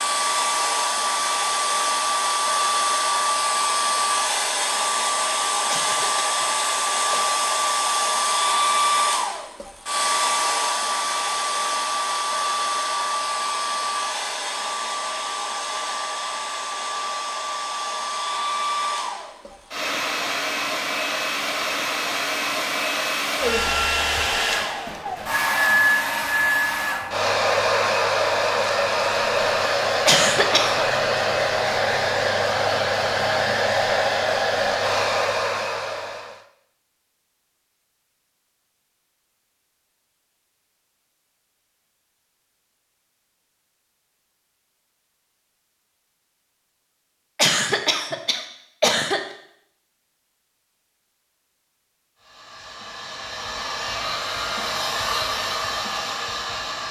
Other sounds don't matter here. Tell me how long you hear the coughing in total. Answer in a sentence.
The coughing can be heard for 4 seconds in total.